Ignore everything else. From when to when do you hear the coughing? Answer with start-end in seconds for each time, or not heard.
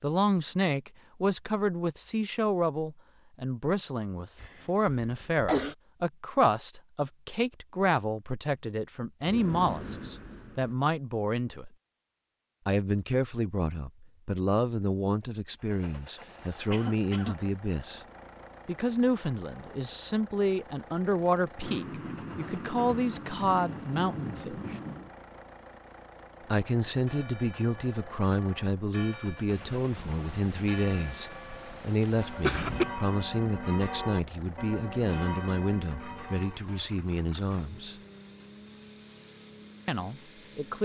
4.4-5.8, 16.7-17.4, 32.0-32.9.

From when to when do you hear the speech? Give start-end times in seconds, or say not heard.
0.0-11.7, 12.7-18.0, 18.6-24.8, 26.4-38.0, 39.9-40.7.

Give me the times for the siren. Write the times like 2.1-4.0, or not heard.
not heard.